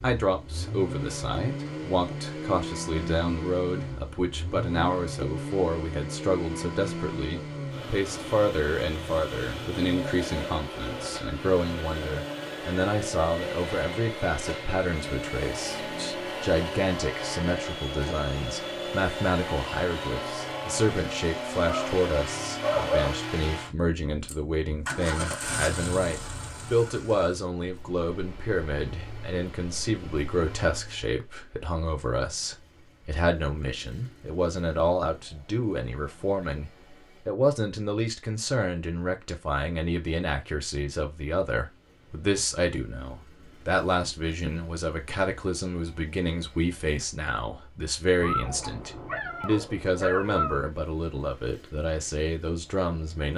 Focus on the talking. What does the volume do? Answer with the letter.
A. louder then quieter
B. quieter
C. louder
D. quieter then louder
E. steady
E.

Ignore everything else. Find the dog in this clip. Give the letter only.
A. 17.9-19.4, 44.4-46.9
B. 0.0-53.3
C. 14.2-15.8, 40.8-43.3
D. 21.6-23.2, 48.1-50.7
D.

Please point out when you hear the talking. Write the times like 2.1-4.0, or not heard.
0.0-53.3.